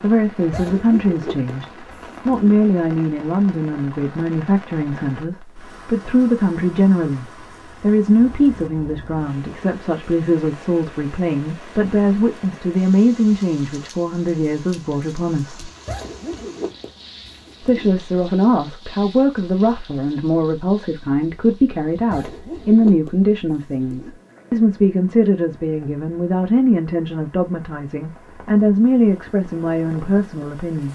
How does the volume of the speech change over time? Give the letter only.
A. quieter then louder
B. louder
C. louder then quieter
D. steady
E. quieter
D.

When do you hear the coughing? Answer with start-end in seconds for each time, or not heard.
not heard.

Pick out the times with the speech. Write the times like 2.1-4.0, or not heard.
0.0-15.7, 17.6-30.8.